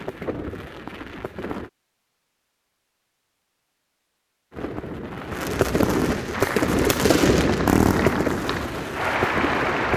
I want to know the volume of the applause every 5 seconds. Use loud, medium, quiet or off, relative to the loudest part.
off, loud.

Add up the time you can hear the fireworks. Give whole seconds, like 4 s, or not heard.
7 s.